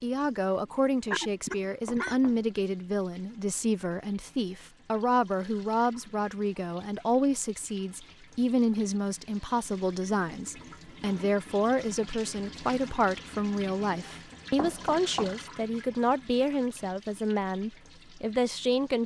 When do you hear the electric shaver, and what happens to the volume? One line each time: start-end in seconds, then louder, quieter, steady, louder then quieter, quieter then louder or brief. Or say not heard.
not heard.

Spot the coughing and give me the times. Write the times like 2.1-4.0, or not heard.
1.1-2.1.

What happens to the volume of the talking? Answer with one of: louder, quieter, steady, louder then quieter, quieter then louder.
steady.